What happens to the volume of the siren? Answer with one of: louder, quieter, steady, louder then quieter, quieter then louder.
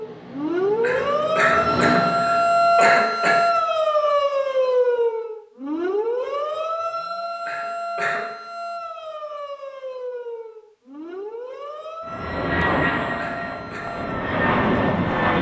quieter.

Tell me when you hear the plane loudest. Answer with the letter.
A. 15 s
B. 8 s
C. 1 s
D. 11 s
A.